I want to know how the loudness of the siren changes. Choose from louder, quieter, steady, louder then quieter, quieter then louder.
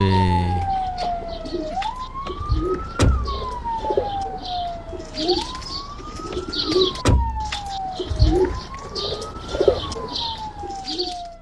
quieter.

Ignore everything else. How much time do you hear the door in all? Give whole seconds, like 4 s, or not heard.
3 s.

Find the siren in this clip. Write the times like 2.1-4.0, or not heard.
0.0-11.3.